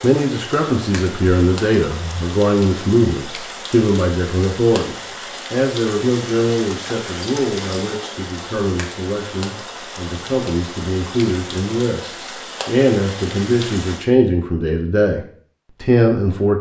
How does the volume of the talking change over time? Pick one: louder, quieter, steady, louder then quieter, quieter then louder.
quieter then louder.